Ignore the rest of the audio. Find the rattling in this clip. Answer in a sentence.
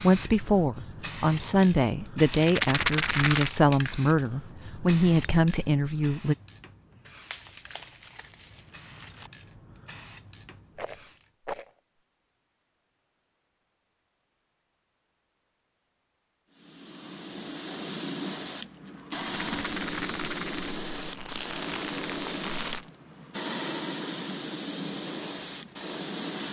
The rattling can be heard from 2.3 to 3.5 s, from 10.8 to 11.8 s and from 19.3 to 20.8 s.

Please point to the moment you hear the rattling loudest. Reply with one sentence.
The volume of the rattling peaks at 3 seconds.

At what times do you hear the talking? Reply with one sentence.
The talking can be heard from 0.0 to 6.3 s.